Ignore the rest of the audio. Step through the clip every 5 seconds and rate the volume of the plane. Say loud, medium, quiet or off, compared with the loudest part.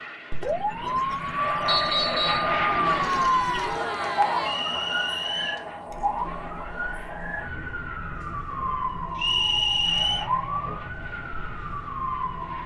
loud, quiet, quiet.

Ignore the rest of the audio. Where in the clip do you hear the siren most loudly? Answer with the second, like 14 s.
3 s.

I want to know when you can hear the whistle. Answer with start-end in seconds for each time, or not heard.
1.6-2.5, 4.4-5.7, 9.2-10.2.